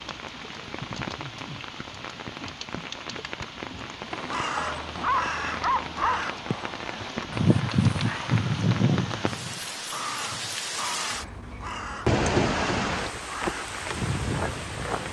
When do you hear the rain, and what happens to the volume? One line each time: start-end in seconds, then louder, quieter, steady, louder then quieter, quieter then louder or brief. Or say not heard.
0.0-15.0 louder.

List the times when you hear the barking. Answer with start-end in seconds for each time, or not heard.
4.5-6.2.